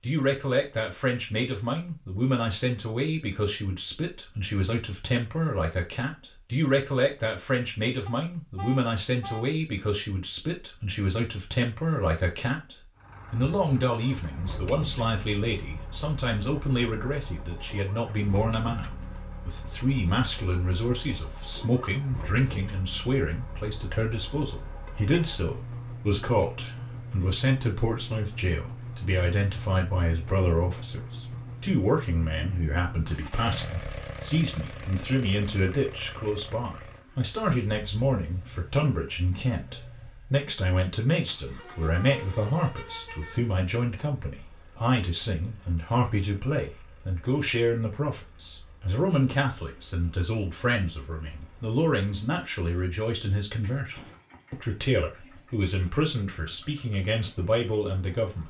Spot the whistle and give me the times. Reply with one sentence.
The whistle can't be heard in this clip.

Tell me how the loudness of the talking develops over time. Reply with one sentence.
The loudness of the talking stays about the same.